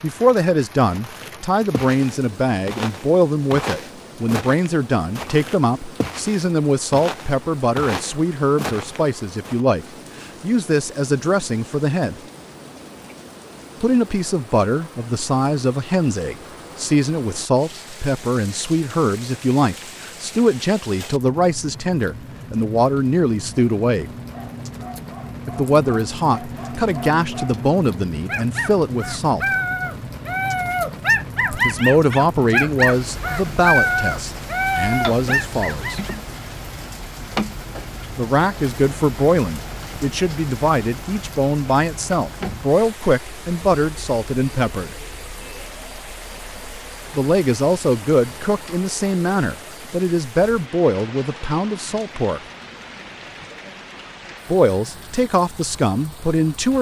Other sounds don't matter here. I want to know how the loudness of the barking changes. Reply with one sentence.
The volume of the barking goes up.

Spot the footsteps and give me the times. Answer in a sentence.
You can hear the footsteps from 0.9 to 9.7 s.